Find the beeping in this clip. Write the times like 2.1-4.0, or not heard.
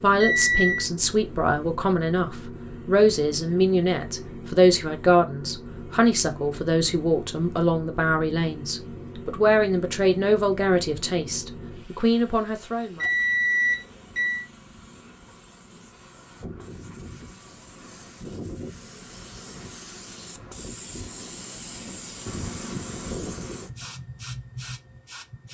0.2-0.8, 13.0-14.4.